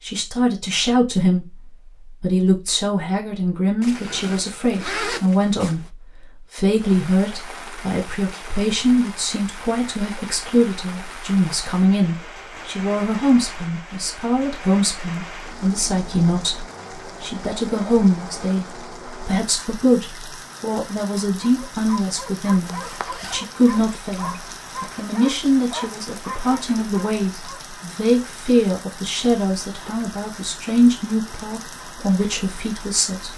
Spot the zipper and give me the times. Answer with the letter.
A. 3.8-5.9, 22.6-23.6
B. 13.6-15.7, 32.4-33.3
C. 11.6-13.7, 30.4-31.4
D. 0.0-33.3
A.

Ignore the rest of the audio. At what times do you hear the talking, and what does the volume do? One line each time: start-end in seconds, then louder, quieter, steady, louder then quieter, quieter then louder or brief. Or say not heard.
0.0-33.3 steady.